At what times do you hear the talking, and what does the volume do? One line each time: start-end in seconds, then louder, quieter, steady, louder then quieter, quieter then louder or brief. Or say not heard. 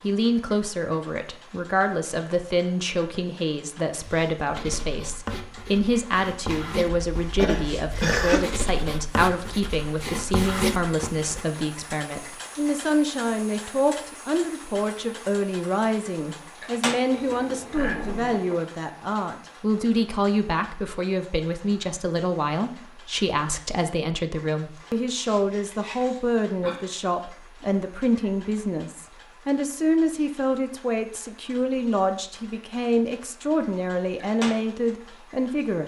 0.0-35.8 steady.